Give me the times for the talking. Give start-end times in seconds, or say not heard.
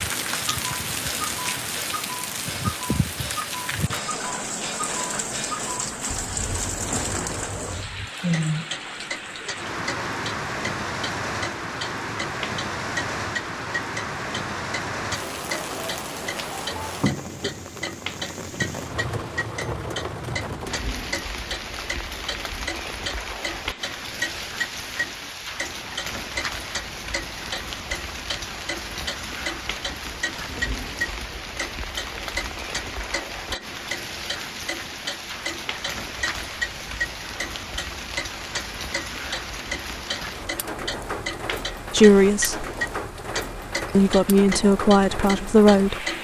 41.9-42.6, 43.9-46.0.